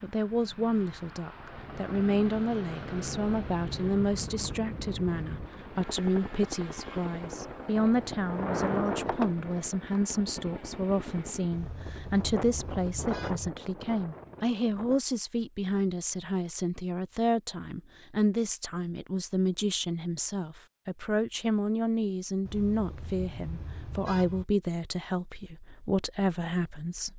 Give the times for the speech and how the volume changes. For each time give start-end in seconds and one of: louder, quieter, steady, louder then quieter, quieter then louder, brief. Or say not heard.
0.0-27.1 steady.